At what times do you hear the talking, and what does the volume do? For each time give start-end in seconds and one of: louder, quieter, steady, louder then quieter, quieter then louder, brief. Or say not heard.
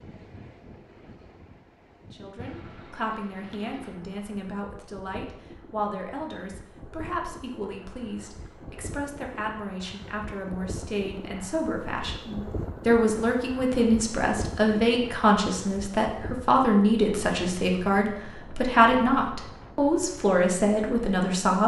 2.1-21.6 louder.